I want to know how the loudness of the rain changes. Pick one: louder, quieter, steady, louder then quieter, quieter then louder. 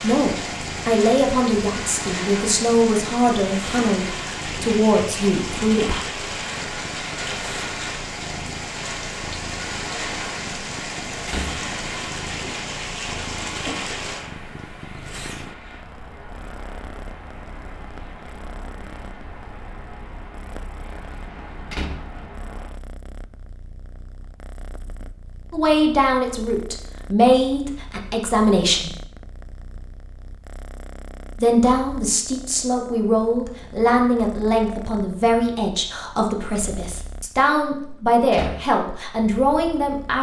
quieter.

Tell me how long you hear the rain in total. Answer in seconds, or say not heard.
23 s.